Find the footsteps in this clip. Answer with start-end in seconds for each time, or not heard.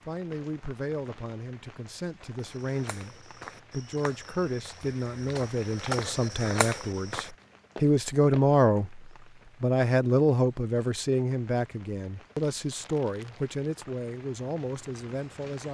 2.4-8.5.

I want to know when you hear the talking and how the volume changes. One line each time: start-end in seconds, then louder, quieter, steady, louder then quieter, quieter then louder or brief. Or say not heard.
0.1-15.6 louder then quieter.